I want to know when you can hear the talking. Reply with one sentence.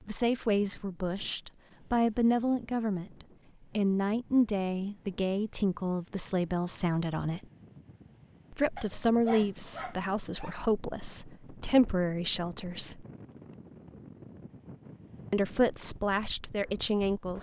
The talking can be heard from 0.1 to 3.1 s, from 3.8 to 7.5 s, from 8.5 to 13.1 s and from 15.3 to 17.3 s.